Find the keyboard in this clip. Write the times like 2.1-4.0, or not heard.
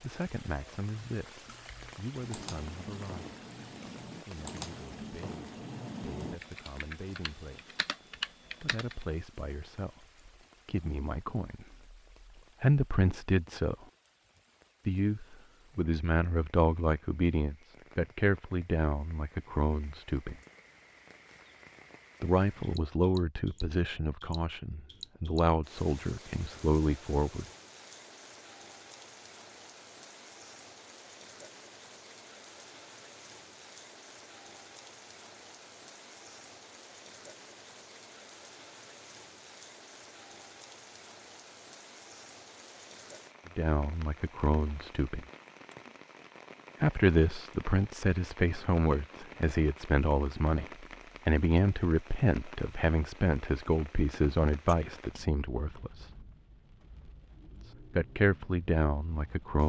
1.4-9.1.